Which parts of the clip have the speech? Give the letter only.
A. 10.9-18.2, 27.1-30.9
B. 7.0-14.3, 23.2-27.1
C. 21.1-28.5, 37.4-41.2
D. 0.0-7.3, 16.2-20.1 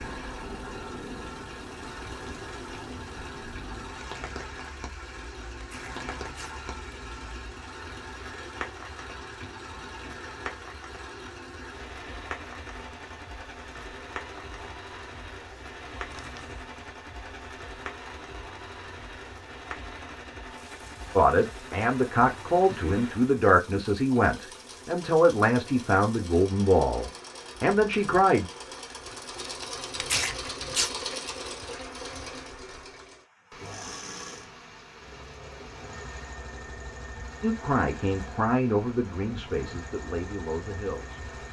C.